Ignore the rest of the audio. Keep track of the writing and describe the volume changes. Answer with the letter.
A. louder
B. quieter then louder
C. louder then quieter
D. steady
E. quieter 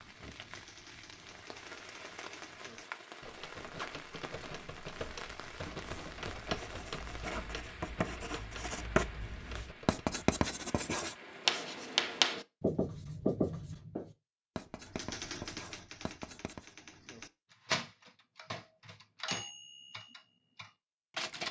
C.